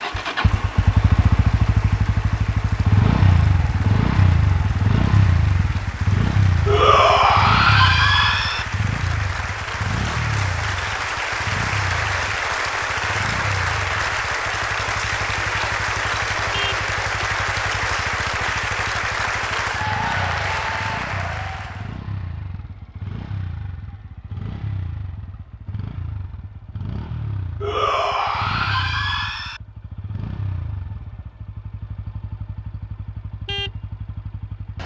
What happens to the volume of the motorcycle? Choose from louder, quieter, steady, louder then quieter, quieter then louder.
quieter.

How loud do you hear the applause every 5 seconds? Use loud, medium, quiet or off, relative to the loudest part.
quiet, medium, loud, loud, loud, off, off.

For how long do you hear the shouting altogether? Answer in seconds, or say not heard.
4 s.